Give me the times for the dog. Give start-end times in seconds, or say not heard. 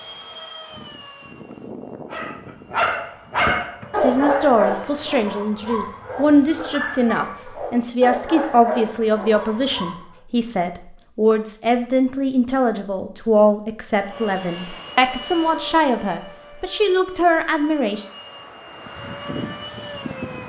2.1-10.0.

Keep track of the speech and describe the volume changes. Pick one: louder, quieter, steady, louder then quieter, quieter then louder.
steady.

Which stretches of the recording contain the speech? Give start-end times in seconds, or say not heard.
4.0-18.1.